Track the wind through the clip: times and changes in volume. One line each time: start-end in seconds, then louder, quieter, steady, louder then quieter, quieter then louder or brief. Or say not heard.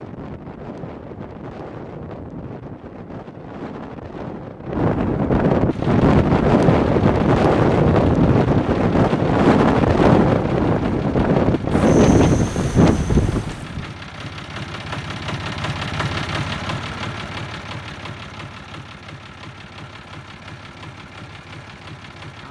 0.0-13.9 louder.